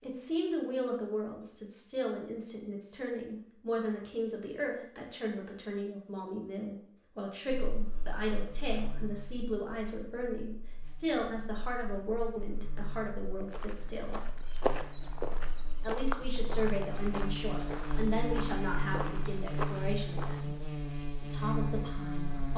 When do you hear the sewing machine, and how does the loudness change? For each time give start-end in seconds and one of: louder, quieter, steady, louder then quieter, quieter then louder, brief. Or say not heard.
not heard.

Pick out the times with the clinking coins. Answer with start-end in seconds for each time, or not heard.
not heard.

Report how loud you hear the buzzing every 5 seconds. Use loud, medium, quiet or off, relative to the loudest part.
off, quiet, quiet, loud, loud.